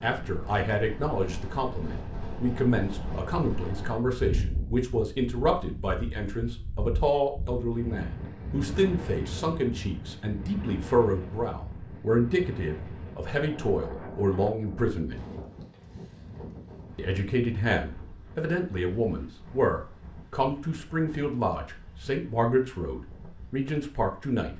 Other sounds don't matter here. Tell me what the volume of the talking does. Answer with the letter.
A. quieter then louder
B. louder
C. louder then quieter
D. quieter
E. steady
E.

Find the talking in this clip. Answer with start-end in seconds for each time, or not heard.
0.0-15.2, 16.9-24.5.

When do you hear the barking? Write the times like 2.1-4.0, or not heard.
not heard.